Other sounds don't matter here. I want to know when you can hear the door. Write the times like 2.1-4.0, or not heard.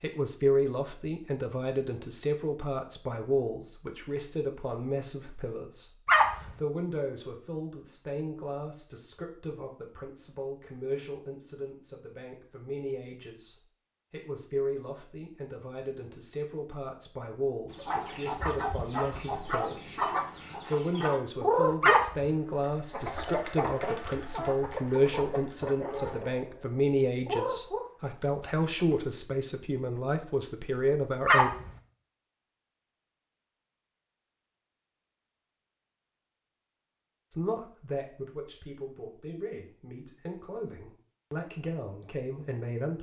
not heard.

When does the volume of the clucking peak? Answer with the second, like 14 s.
22 s.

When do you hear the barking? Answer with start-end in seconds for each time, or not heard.
6.0-6.5, 21.8-22.2, 31.2-31.7.